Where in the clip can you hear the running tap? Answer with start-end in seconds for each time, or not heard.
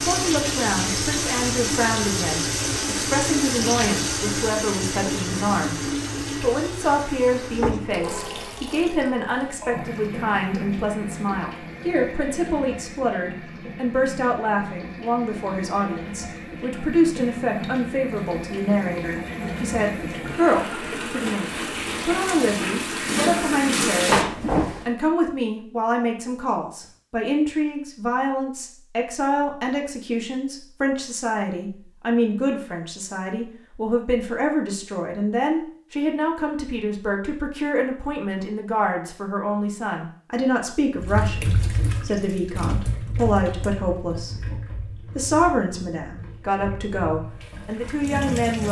0.0-24.9, 41.0-48.6.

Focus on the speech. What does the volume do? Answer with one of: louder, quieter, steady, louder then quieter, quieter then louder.
steady.